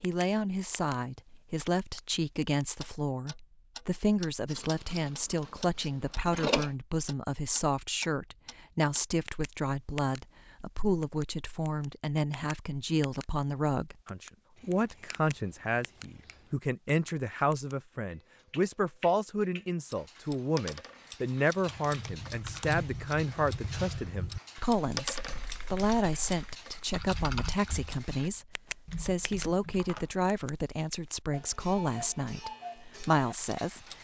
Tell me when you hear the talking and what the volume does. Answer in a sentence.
The talking can be heard from 0.0 to 33.8 s, at a steady volume.